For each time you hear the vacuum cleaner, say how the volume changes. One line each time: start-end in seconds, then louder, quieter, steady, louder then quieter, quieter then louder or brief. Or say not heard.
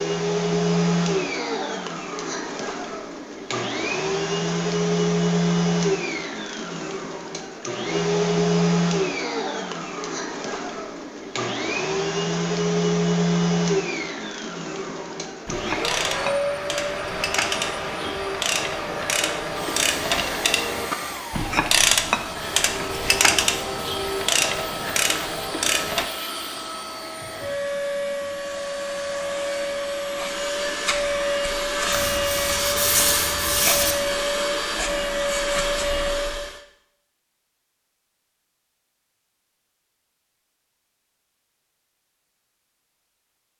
0.0-36.6 quieter then louder.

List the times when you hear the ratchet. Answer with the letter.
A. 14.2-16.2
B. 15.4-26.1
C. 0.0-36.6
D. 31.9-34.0
B.